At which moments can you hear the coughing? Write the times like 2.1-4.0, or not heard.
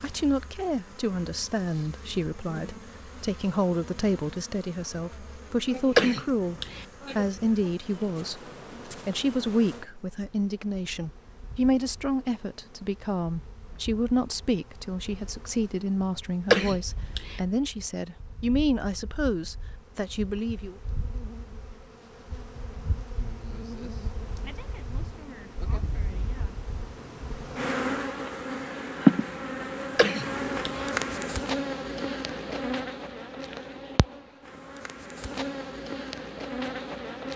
6.0-6.8, 16.5-17.4, 29.9-30.9.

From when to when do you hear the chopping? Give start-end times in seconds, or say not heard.
not heard.